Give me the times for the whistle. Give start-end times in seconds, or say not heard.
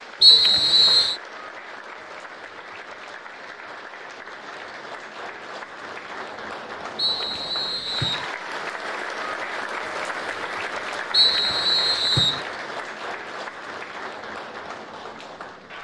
0.2-1.1, 7.0-8.2, 11.1-12.4.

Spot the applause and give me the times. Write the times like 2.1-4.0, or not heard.
0.0-15.8.